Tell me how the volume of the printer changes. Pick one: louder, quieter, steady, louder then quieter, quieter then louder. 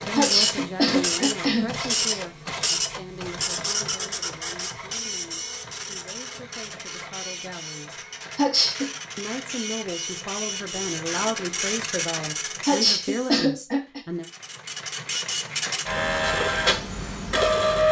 quieter then louder.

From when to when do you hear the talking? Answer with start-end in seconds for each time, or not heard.
0.1-8.1, 9.2-14.2.